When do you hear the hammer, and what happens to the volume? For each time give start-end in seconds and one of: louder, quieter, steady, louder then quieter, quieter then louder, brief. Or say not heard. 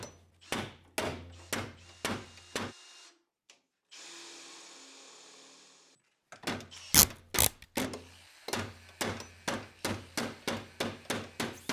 0.0-2.8 brief
6.3-11.6 steady.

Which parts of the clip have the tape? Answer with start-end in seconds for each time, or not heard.
6.9-7.8.